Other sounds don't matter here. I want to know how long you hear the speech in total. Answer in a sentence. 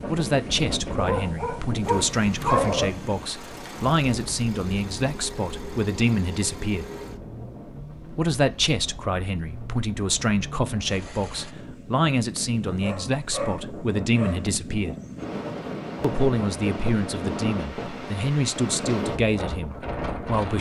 You can hear the speech for 18 seconds altogether.